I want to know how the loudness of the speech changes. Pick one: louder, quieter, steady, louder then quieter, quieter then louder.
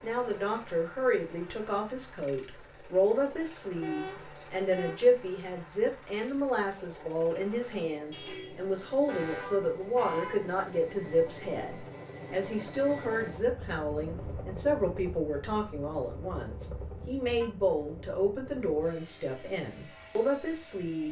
steady.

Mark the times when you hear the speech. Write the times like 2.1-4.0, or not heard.
0.0-21.0.